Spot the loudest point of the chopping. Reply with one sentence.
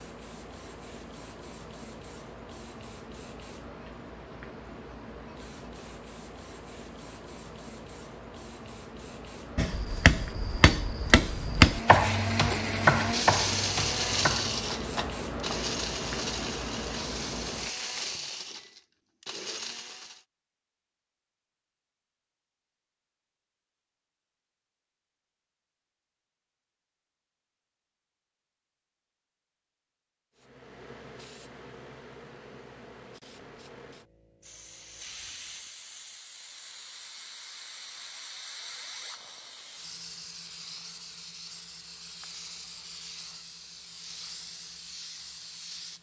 The loudest moment of the chopping is at 12 seconds.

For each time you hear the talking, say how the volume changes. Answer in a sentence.
You can't hear the talking here.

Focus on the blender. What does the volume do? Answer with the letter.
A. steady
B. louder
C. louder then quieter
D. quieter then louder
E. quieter
E.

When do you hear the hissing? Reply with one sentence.
You can hear the hissing from 0.0 to 18.6 s and from 30.4 to 45.9 s.